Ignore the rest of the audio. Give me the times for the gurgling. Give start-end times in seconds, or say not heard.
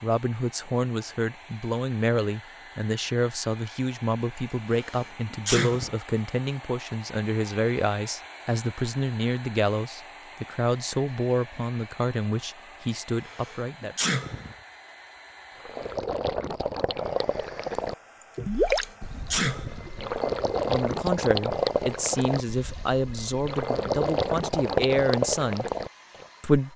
15.6-26.2.